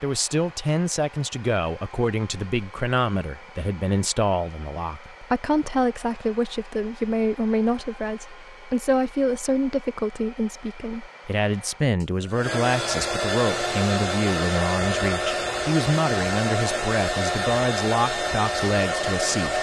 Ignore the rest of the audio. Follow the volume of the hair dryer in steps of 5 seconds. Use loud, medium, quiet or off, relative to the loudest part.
quiet, quiet, loud, loud.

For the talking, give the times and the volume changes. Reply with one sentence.
You can hear the talking from 0.0 to 19.5 s, at a steady volume.